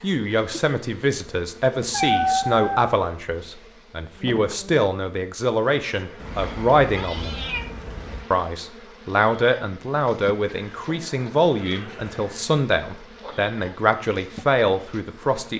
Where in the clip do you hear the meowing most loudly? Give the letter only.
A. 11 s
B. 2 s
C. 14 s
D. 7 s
B.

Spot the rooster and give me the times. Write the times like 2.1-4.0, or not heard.
not heard.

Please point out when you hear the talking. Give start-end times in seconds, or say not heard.
0.0-7.3, 8.3-15.5.